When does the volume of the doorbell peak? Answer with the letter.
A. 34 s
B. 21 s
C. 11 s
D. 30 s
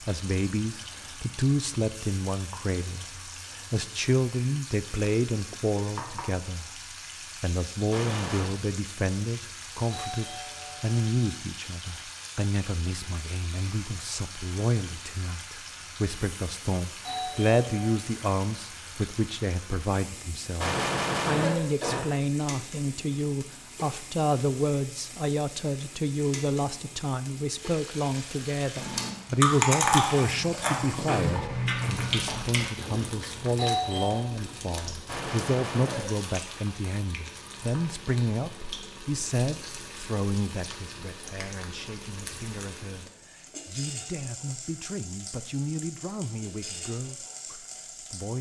A.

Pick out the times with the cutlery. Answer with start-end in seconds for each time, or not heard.
not heard.